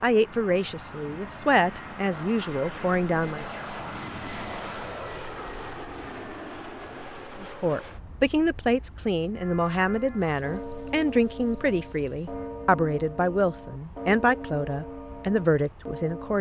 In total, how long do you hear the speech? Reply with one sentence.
You can hear the speech for 12 seconds altogether.